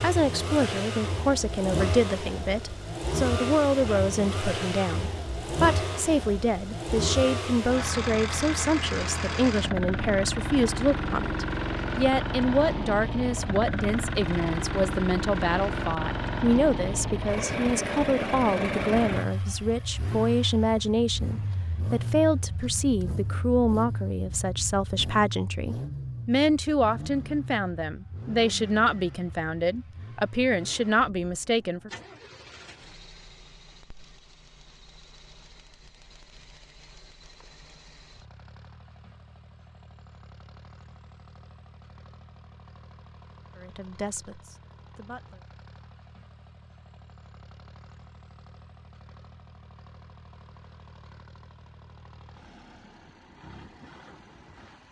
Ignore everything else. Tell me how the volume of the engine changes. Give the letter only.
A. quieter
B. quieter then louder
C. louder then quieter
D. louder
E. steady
A.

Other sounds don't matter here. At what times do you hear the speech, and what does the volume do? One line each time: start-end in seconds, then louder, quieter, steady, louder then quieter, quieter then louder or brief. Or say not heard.
0.0-31.9 steady
43.5-45.5 brief.